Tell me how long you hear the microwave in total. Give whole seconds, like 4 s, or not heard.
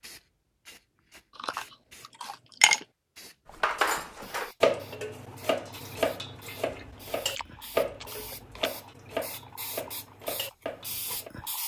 not heard.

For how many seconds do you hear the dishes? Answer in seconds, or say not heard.
8 s.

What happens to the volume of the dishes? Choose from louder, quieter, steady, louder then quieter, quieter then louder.
quieter.